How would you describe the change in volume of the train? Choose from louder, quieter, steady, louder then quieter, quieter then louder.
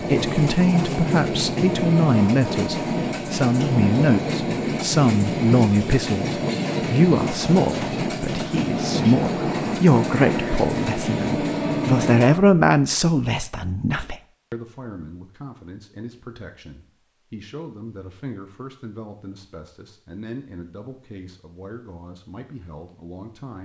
steady.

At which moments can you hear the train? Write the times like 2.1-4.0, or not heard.
0.0-12.3.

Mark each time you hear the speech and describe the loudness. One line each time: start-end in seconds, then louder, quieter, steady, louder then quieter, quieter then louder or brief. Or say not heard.
0.0-23.5 quieter.